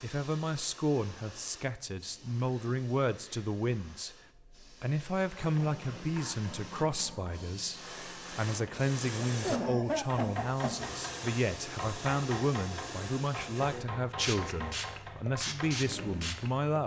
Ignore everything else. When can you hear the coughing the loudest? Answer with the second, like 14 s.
10 s.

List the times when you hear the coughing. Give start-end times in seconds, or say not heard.
2.5-3.5, 9.4-10.8.